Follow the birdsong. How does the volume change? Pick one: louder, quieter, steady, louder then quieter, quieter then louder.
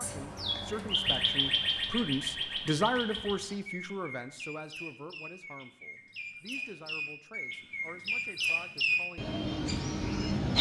quieter then louder.